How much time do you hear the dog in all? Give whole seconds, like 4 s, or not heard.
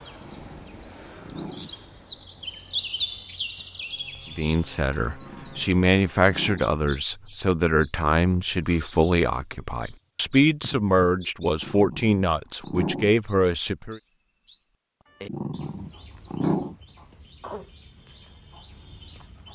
6 s.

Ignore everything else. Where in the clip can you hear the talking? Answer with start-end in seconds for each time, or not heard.
4.3-14.0.